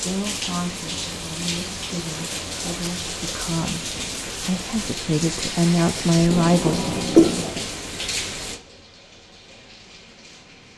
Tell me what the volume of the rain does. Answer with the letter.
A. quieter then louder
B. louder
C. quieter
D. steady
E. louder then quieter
C.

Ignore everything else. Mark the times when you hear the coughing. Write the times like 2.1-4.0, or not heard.
6.7-7.3.